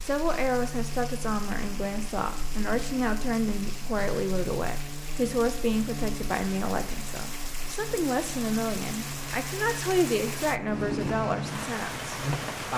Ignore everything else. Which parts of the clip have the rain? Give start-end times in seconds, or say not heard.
0.0-12.7.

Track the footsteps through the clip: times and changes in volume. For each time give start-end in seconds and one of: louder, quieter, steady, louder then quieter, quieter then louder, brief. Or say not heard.
not heard.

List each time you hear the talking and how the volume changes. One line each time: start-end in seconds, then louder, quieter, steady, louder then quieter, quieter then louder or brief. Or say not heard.
0.0-12.7 steady.